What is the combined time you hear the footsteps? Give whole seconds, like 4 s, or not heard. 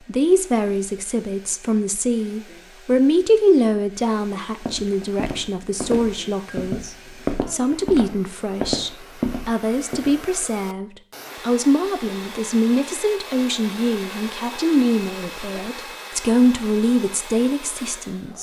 6 s.